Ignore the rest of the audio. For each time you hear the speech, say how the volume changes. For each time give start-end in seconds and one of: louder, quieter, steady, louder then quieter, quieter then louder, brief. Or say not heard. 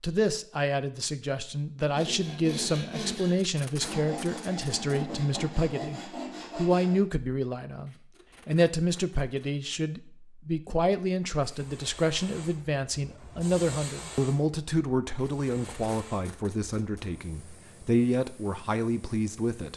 0.0-19.7 steady.